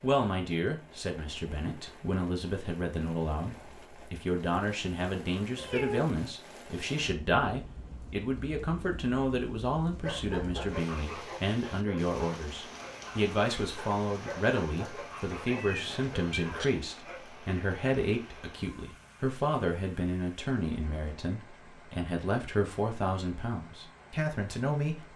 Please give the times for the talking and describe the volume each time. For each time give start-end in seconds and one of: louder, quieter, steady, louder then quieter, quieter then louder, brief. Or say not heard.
0.0-25.1 steady.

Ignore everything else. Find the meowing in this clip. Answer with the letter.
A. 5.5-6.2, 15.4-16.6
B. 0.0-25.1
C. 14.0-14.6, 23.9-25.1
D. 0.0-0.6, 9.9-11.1
A.